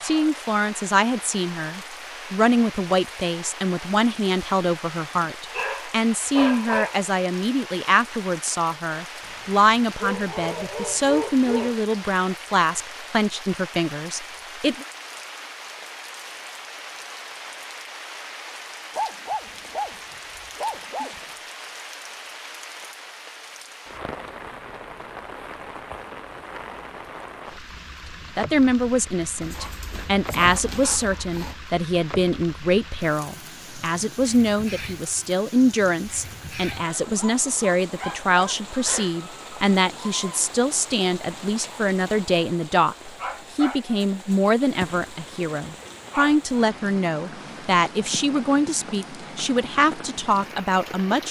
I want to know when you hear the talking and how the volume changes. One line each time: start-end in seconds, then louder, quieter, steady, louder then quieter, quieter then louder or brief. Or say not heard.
0.0-14.8 steady
28.4-51.2 steady.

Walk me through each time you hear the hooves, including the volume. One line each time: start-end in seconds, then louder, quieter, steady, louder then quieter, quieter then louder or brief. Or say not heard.
not heard.